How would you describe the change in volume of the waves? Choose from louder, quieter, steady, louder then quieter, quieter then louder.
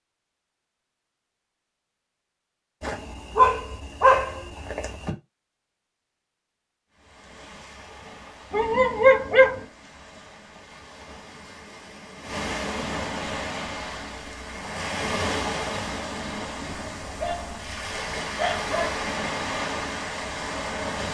louder.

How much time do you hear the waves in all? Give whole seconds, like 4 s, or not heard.
14 s.